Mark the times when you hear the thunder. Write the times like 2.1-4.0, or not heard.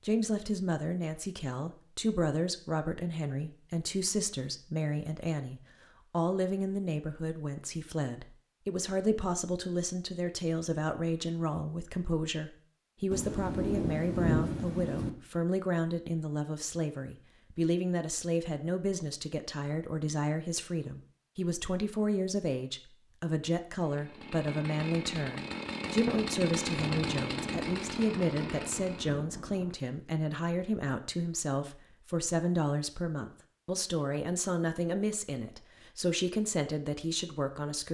13.1-15.1, 25.8-29.8.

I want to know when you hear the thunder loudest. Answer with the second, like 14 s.
14 s.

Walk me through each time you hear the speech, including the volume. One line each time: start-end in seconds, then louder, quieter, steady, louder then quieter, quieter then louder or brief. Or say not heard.
0.0-37.8 steady.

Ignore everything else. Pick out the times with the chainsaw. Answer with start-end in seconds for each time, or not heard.
23.8-29.2.